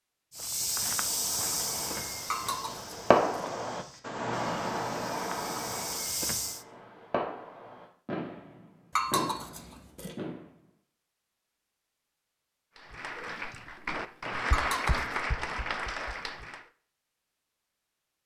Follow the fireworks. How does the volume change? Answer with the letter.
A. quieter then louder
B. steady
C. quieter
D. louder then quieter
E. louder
D.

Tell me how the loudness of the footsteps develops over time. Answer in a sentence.
The volume of the footsteps goes down, then up.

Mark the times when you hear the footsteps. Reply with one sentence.
The footsteps can be heard from 0.3 to 6.7 s.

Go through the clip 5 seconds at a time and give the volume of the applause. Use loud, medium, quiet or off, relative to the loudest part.
off, off, loud, loud.